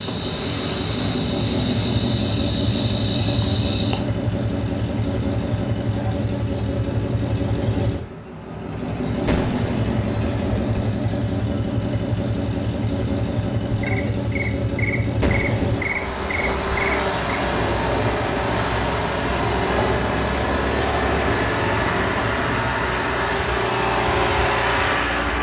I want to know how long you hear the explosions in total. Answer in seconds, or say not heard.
3 s.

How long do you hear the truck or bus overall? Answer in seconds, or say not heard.
25 s.